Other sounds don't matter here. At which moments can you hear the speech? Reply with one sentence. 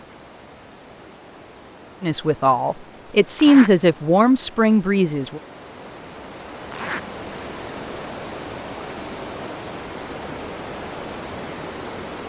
You can hear the speech from 2.0 to 5.4 s.